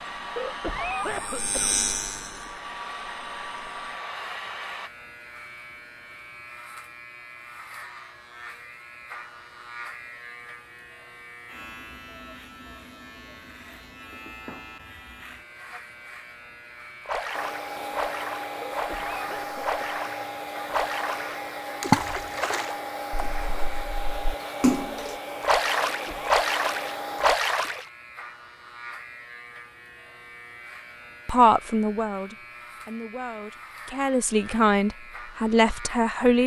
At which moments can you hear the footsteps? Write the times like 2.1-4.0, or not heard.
not heard.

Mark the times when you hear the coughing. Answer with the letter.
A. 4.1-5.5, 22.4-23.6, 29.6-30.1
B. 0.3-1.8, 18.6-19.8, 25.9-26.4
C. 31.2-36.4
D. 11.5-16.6
B.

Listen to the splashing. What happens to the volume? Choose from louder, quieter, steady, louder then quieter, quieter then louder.
louder.